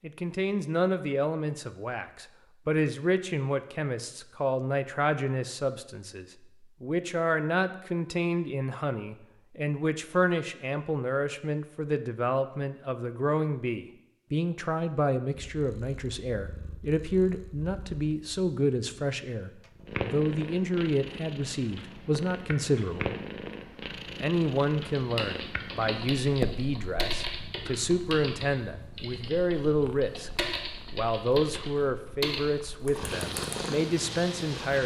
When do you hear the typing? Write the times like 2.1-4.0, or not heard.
24.9-33.7.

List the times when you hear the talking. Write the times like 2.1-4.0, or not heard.
0.0-23.1, 24.2-30.3, 30.9-34.8.